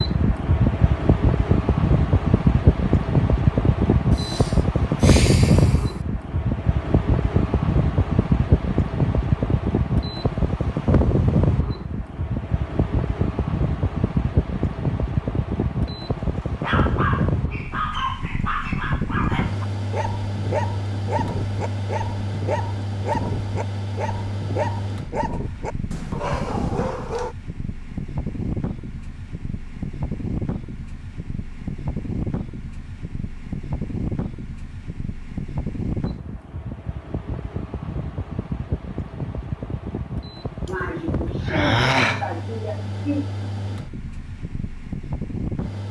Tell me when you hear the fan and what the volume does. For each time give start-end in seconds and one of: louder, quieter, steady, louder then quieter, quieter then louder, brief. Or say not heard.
0.0-45.8 quieter.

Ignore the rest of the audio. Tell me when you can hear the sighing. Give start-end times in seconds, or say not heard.
4.1-6.0, 40.6-43.2.